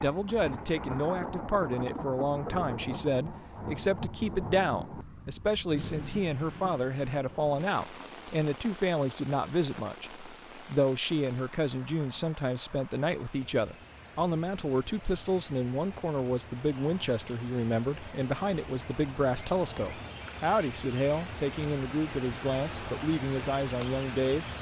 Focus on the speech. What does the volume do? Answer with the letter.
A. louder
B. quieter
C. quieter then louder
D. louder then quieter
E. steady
E.